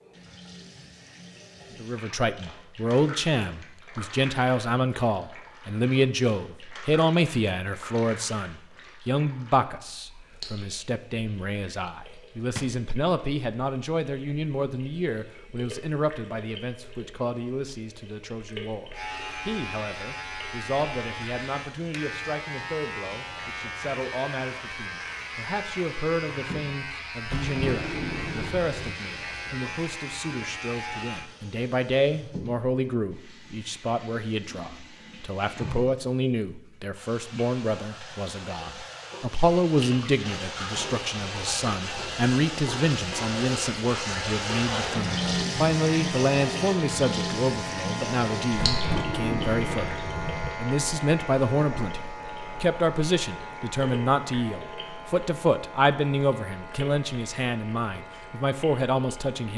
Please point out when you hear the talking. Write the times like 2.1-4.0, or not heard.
1.8-59.5.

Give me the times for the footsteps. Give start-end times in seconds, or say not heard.
not heard.